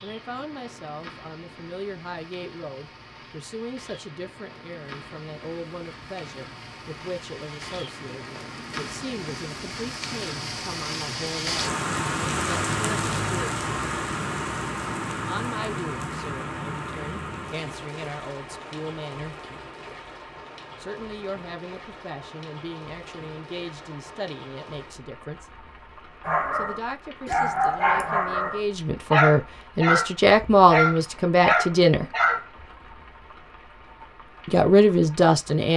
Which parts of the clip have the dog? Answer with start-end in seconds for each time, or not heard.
26.2-32.6.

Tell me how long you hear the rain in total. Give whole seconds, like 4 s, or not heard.
36 s.